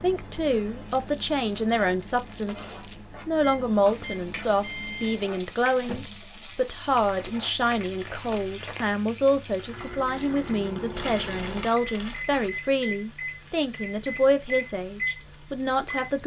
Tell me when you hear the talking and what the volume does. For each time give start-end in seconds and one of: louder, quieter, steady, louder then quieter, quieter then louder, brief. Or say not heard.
0.0-16.2 steady.